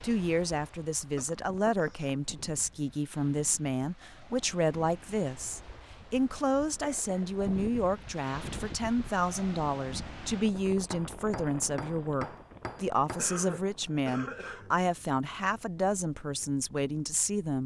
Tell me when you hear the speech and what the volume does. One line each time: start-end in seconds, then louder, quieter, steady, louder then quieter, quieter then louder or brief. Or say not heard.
0.0-17.6 steady.